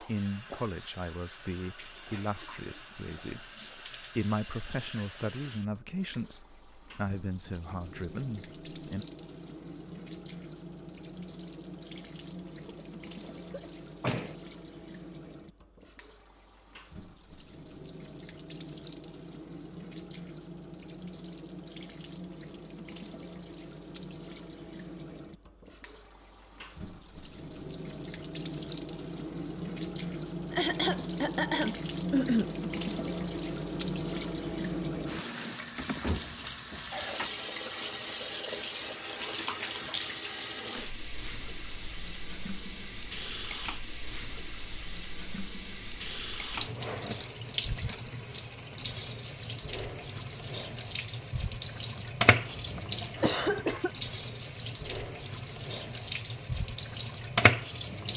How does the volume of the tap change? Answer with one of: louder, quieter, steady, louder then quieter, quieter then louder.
louder.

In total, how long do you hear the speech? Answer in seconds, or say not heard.
9 s.